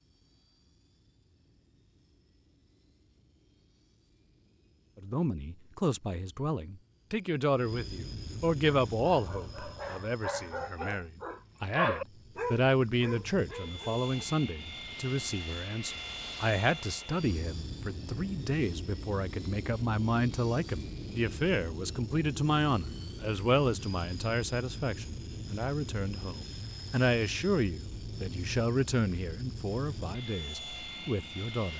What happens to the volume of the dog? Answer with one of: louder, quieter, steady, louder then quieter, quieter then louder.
louder then quieter.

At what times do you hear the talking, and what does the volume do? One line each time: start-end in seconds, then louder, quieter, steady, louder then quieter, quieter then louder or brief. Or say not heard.
5.0-31.7 steady.